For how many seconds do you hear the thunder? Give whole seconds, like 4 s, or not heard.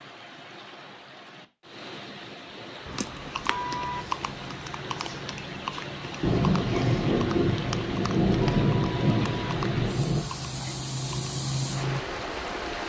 4 s.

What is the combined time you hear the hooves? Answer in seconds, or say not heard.
9 s.